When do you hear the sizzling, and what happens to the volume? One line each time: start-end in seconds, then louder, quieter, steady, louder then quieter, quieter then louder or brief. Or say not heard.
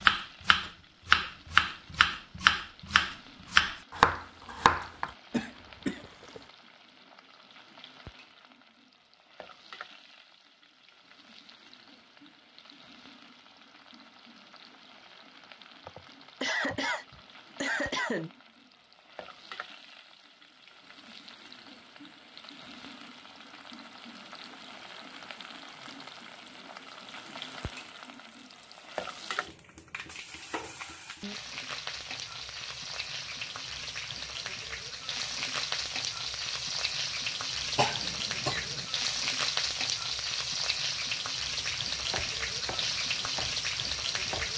0.0-44.5 louder.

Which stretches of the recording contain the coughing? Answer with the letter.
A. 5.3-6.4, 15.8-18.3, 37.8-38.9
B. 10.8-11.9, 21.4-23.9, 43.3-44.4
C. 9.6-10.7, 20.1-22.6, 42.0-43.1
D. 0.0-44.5
A.